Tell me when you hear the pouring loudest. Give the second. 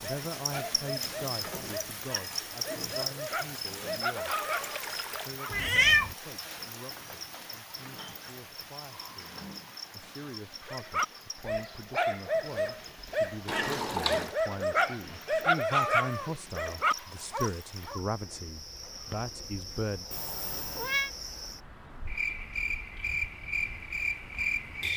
14 s.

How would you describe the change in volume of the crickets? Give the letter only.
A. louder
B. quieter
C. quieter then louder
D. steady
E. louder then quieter
C.